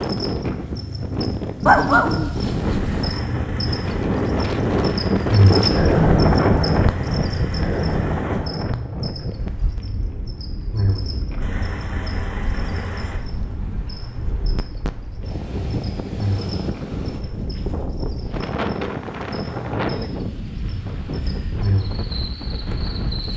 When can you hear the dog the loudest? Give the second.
2 s.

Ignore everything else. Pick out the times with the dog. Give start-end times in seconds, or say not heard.
1.6-3.2.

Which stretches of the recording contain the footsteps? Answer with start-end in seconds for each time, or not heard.
not heard.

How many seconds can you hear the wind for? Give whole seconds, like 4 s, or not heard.
23 s.